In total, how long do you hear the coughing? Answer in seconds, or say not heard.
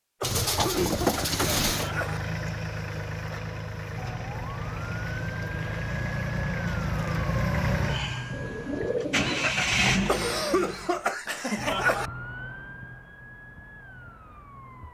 4 s.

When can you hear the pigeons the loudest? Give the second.
1 s.